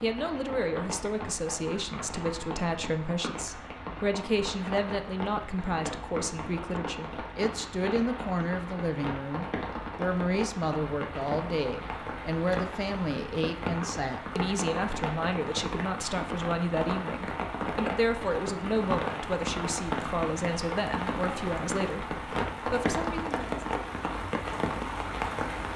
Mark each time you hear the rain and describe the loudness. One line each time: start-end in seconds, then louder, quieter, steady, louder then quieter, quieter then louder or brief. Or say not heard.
0.0-25.7 louder.